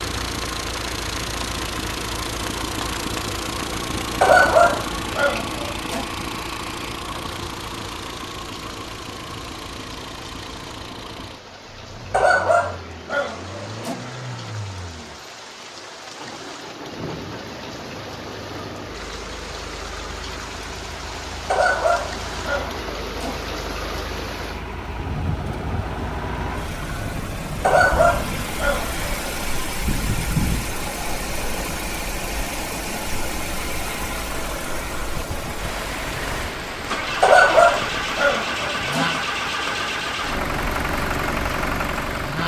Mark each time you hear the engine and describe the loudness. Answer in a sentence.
The engine can be heard from 0.0 to 42.4 s, getting quieter then louder.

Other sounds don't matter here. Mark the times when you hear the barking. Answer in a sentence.
You can hear the barking from 4.2 to 6.0 s, from 12.1 to 13.9 s, from 21.5 to 23.5 s, from 27.6 to 29.1 s and from 37.2 to 39.2 s.